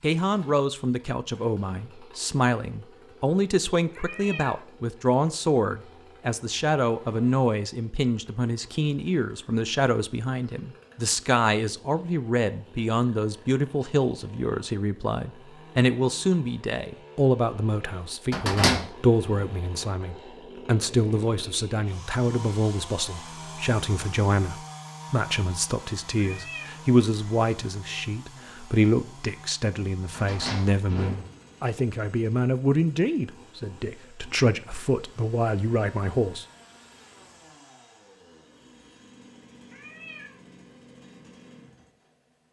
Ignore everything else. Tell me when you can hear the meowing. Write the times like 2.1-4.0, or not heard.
4.0-4.7, 26.1-26.8, 39.7-40.4.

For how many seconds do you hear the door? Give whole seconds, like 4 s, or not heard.
2 s.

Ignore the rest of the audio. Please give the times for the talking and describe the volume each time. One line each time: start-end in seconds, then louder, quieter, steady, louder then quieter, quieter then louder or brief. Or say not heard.
0.0-36.5 steady.